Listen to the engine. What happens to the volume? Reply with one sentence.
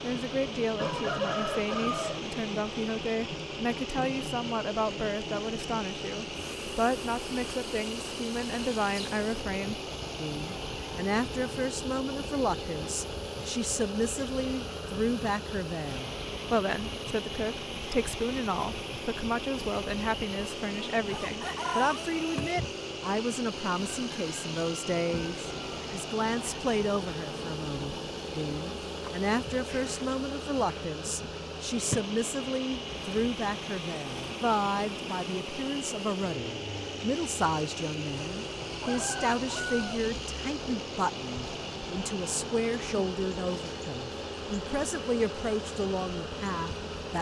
The volume of the engine stays about the same.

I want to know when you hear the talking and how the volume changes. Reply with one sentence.
You can hear the talking from 0.0 to 47.1 s, at a steady volume.